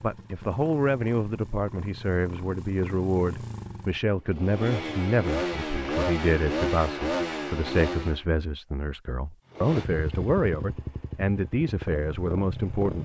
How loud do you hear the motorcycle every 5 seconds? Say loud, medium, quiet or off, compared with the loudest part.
medium, loud, medium.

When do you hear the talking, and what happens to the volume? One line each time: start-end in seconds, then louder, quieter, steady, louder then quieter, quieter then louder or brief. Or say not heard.
0.0-12.9 steady.